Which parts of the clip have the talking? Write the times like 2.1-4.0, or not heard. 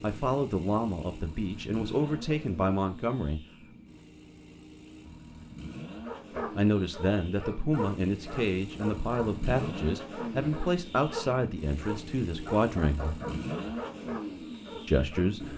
0.0-3.4, 6.5-13.2, 14.8-15.5.